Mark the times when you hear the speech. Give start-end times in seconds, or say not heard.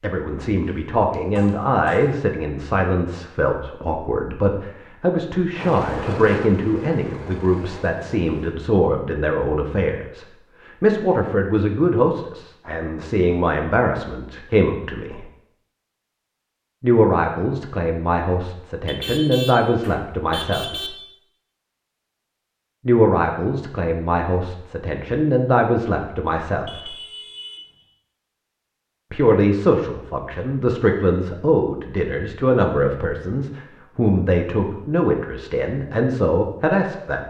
0.0-15.2, 16.8-20.9, 22.9-26.9, 29.1-37.2.